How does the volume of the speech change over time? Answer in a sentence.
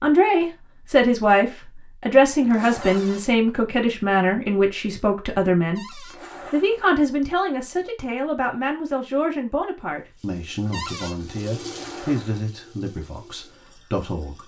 The volume of the speech goes down.